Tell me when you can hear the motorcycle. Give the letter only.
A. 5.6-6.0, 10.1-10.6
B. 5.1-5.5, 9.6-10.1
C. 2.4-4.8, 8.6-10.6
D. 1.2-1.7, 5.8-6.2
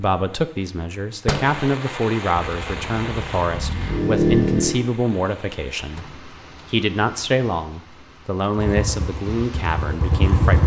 C.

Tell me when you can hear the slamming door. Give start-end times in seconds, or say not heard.
1.2-1.7, 5.8-6.2.